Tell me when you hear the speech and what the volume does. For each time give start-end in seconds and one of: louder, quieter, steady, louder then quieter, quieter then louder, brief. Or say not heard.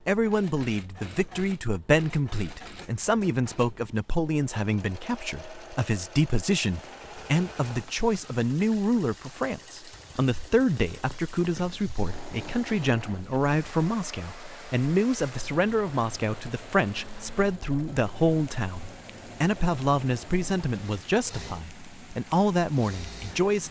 0.1-23.6 steady.